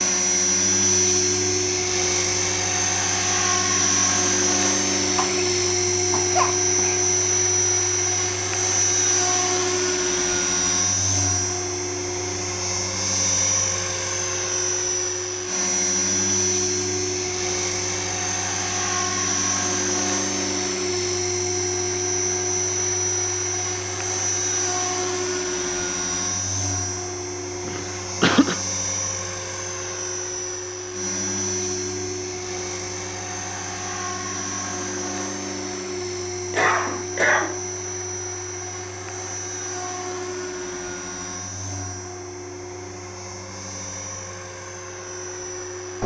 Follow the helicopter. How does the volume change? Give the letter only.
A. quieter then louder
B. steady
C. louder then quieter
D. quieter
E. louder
D.